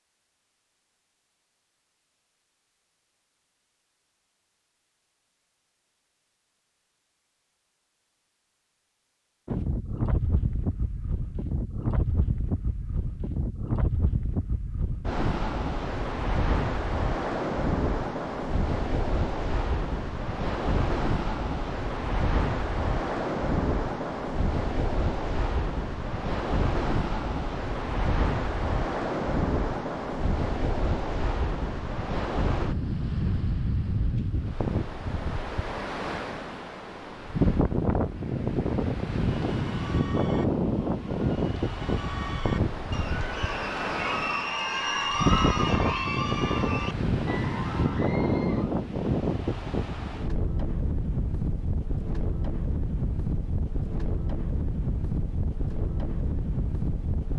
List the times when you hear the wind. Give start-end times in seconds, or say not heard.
9.4-57.3.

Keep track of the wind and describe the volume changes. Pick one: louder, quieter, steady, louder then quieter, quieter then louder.
steady.